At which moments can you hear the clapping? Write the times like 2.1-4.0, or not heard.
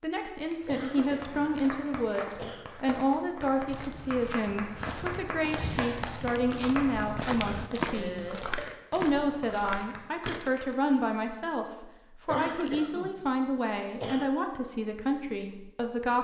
0.5-10.8.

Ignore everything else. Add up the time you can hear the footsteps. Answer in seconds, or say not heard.
10 s.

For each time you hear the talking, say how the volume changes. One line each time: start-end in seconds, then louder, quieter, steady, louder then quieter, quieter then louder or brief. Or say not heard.
0.0-16.1 steady.